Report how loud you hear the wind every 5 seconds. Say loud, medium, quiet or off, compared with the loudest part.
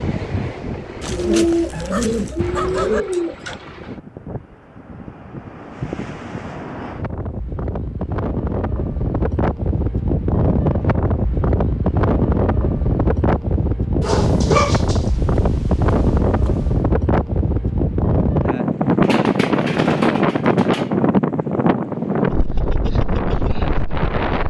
quiet, medium, loud, loud, loud.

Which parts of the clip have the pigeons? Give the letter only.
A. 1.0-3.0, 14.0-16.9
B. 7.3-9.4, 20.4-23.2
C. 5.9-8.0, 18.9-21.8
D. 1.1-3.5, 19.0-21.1
D.